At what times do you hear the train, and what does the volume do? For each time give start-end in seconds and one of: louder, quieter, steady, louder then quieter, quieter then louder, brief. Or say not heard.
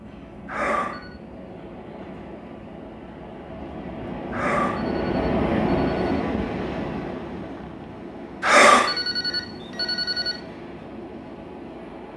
0.0-12.1 louder then quieter.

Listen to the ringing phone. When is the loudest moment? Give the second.
9 s.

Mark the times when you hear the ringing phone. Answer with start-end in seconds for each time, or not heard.
0.5-1.1, 4.3-6.2, 8.4-10.3.